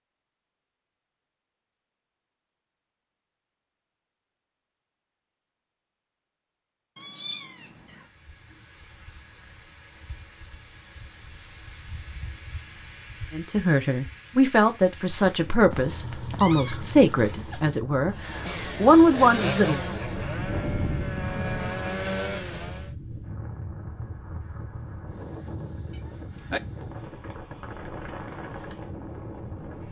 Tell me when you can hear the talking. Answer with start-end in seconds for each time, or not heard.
13.3-19.9.